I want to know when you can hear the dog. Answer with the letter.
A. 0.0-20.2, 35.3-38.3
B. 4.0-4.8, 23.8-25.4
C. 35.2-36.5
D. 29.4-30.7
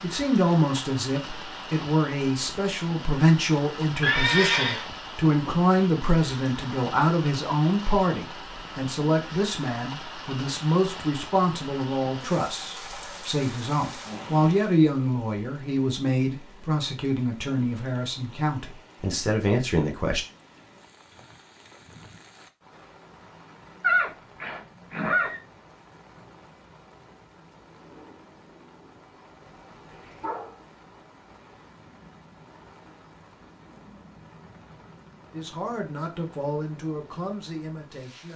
D.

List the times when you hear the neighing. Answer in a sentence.
You can hear the neighing from 4.0 to 4.8 s and from 23.8 to 25.4 s.